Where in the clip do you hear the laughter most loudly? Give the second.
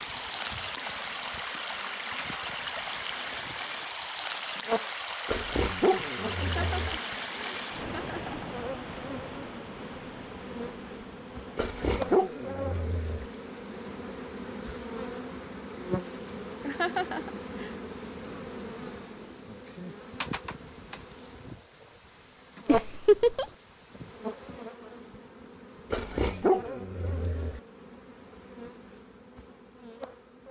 23 s.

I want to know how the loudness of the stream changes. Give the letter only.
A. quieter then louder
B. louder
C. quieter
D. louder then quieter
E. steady
C.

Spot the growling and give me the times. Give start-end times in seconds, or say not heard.
5.2-7.0, 11.6-13.2, 25.9-27.6.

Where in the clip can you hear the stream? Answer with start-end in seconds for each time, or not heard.
0.0-24.8.